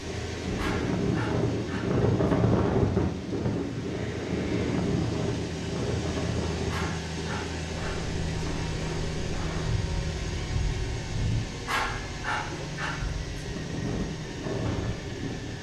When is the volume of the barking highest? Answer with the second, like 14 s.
12 s.